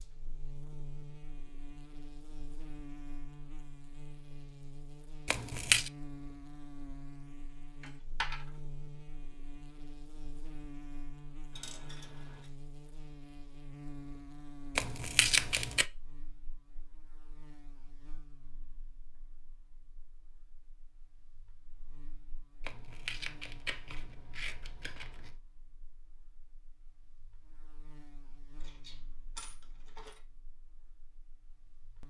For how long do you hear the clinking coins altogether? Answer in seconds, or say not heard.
3 s.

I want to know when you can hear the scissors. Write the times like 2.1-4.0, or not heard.
5.2-5.9, 14.8-15.8, 22.6-25.4.